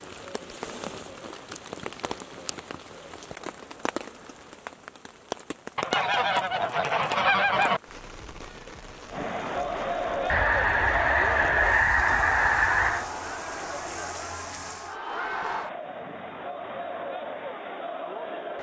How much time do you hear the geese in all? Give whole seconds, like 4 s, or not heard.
5 s.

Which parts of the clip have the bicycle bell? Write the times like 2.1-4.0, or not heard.
not heard.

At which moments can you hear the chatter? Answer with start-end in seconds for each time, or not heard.
9.1-18.5.